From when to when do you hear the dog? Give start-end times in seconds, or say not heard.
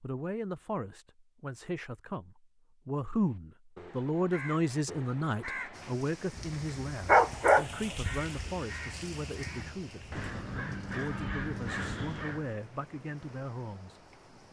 7.0-8.5.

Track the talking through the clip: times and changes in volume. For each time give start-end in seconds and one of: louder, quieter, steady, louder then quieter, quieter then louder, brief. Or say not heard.
0.0-14.0 louder then quieter.